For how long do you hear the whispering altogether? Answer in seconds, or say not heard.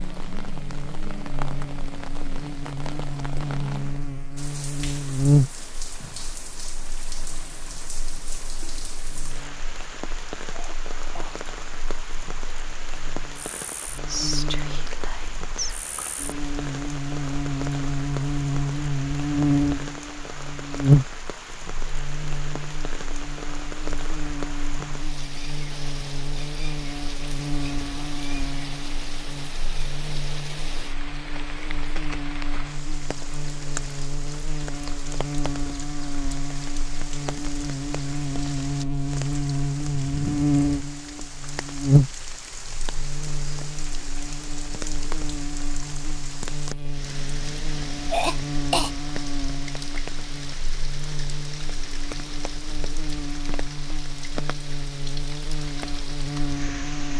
2 s.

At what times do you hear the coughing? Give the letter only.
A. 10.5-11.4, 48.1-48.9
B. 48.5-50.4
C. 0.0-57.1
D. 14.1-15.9
A.